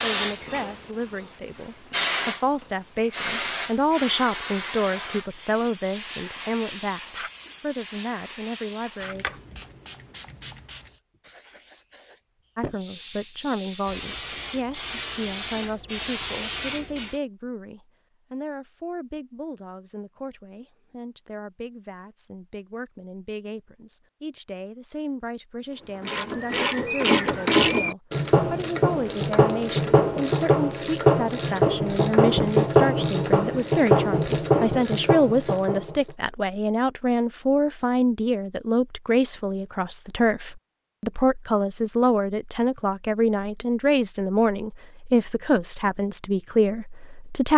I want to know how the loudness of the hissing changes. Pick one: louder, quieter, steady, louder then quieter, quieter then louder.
quieter then louder.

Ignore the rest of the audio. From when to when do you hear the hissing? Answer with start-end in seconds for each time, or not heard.
0.0-17.2.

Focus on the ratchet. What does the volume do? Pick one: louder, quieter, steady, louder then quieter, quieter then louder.
steady.